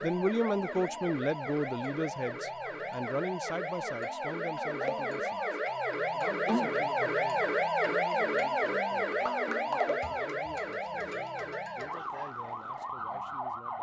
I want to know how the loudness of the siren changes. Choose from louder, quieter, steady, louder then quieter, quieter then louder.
louder then quieter.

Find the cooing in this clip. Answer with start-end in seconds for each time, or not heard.
not heard.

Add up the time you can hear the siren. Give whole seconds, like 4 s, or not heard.
14 s.